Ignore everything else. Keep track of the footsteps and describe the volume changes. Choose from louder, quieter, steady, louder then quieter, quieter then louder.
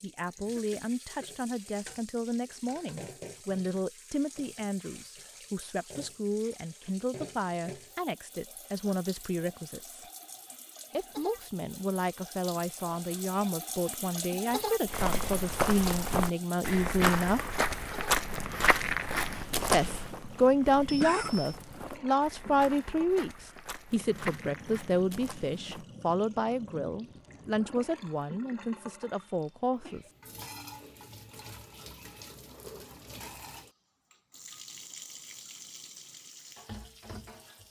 quieter.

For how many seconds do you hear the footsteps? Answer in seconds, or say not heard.
11 s.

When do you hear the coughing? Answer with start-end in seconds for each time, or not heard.
0.3-1.4, 20.9-21.6, 29.1-30.1.